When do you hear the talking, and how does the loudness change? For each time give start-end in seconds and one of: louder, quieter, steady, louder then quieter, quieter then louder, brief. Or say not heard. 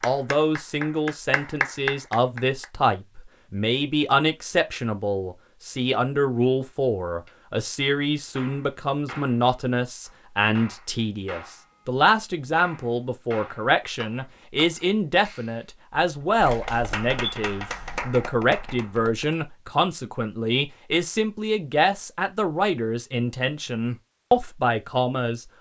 0.0-25.4 steady.